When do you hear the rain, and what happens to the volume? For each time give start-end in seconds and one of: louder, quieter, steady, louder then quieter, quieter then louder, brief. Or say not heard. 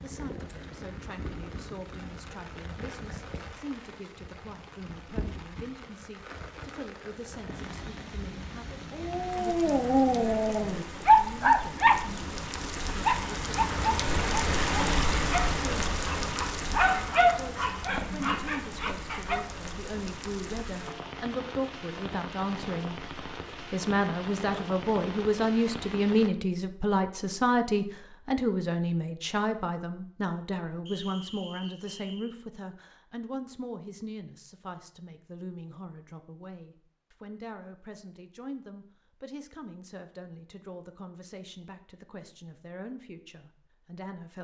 0.0-26.3 louder then quieter.